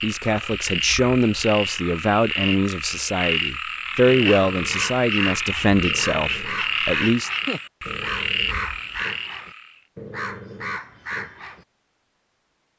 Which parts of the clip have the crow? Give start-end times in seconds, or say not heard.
4.1-11.7.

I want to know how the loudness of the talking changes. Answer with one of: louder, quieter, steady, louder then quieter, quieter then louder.
steady.